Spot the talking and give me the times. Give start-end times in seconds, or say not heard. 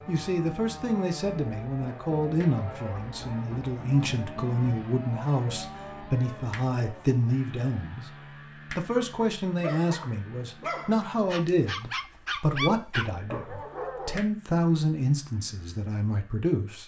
0.1-8.1, 8.7-16.8.